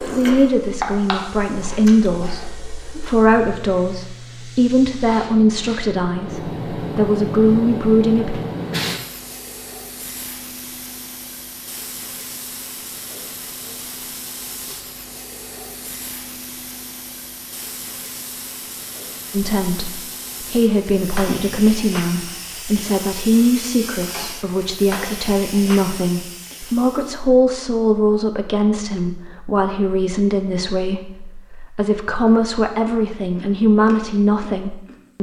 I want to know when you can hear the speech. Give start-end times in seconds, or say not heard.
0.0-8.3, 19.3-35.1.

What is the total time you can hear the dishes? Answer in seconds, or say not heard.
not heard.